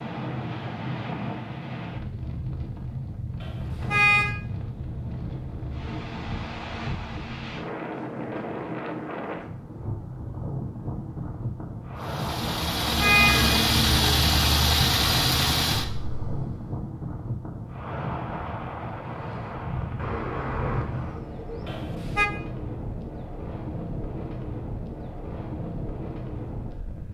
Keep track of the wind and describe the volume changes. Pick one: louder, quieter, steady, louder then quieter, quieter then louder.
steady.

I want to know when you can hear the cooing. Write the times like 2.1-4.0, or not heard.
19.9-21.6.